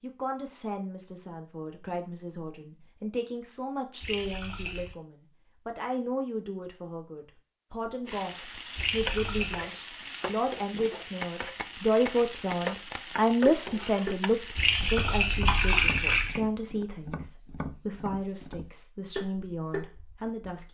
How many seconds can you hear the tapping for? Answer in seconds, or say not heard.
10 s.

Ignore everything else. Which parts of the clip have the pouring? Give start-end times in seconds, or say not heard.
4.0-5.0, 8.8-9.7, 14.6-16.4.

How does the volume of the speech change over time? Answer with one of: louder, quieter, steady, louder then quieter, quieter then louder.
louder then quieter.